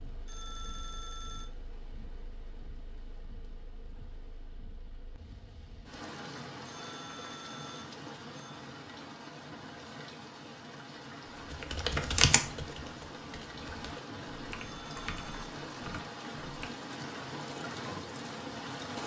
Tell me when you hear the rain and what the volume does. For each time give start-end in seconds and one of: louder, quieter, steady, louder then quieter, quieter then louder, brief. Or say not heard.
0.0-19.0 louder.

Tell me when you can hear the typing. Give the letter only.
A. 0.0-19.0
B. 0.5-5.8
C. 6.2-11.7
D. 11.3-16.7
D.